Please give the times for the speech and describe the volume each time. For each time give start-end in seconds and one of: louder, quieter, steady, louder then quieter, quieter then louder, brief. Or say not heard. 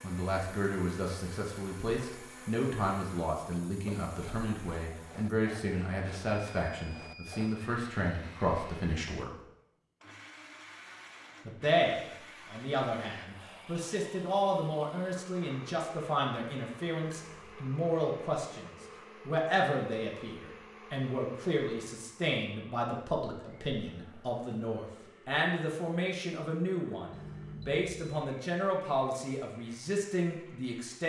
0.0-9.3 steady
11.4-31.0 steady.